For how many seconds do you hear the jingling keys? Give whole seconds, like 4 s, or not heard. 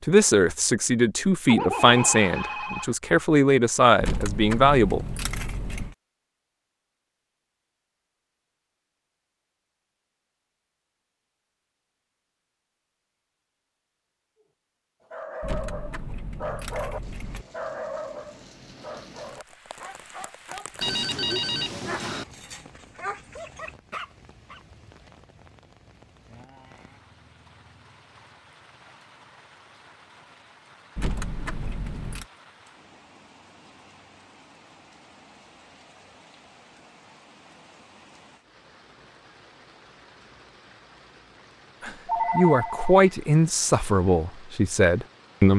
5 s.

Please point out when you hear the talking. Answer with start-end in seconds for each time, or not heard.
0.0-5.0, 41.8-45.5.